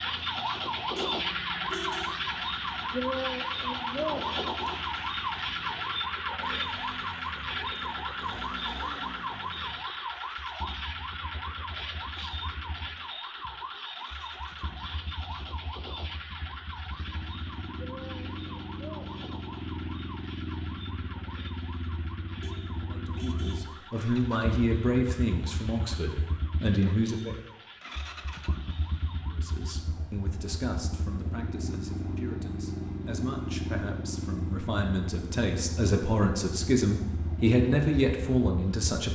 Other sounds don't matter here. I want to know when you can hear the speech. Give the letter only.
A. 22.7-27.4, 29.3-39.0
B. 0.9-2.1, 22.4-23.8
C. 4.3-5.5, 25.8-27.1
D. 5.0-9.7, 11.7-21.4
A.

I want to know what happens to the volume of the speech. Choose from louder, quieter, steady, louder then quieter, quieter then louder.
quieter then louder.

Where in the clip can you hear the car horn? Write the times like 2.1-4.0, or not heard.
0.9-2.1, 22.4-23.8.